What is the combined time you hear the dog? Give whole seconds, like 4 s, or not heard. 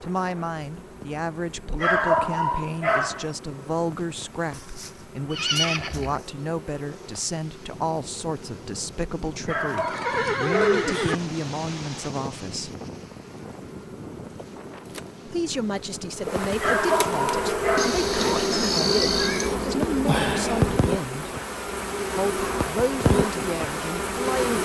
4 s.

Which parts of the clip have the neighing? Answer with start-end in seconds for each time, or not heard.
4.5-6.2, 9.8-11.2, 17.8-19.6.